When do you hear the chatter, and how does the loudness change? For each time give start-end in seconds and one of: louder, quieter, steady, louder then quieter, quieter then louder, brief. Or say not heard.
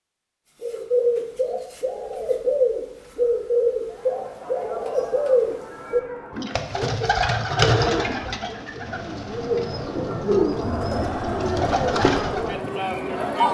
3.9-13.4 louder.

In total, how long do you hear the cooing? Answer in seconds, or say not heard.
12 s.